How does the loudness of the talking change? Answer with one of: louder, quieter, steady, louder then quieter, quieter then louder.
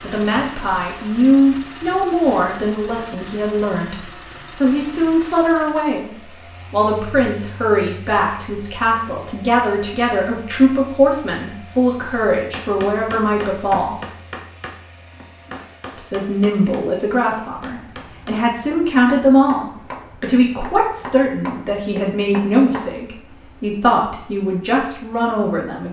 steady.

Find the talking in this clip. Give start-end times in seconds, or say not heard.
0.0-13.9, 15.9-25.8.